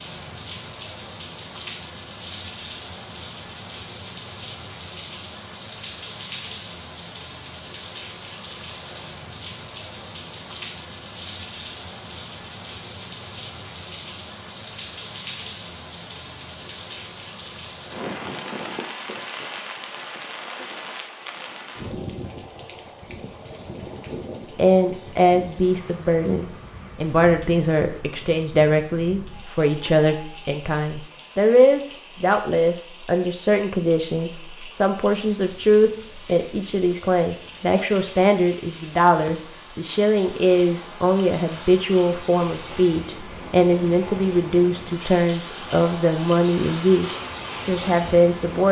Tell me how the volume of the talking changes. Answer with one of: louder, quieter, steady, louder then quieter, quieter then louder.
steady.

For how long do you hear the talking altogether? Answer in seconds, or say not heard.
24 s.